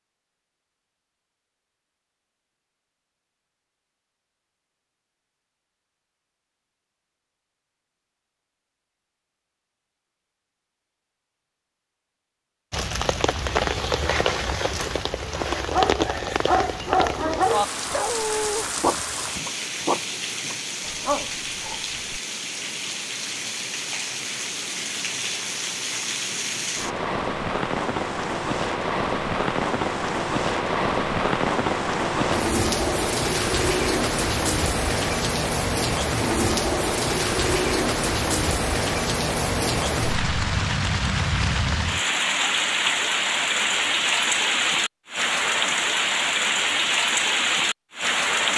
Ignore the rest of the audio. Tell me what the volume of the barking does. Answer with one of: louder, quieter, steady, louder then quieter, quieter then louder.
quieter.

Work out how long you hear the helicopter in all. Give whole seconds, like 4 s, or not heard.
not heard.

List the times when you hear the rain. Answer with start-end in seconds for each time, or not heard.
12.7-48.5.